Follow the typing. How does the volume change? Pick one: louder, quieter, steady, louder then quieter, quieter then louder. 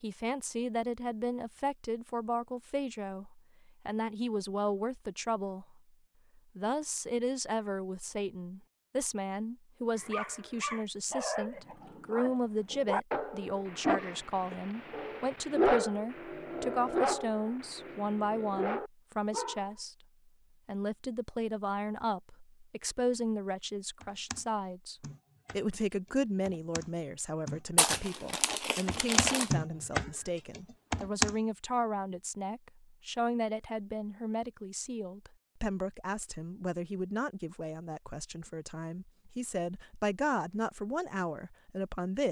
louder.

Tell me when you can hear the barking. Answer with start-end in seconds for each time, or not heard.
9.9-19.7.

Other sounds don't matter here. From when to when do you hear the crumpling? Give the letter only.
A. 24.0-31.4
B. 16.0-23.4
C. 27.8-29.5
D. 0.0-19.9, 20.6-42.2
C.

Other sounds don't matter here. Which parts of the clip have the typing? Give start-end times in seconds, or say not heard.
24.0-31.4.